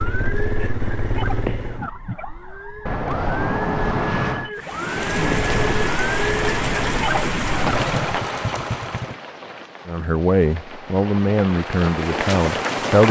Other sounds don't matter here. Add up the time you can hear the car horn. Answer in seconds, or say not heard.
2 s.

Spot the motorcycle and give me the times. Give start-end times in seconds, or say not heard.
0.0-1.9, 5.1-9.2.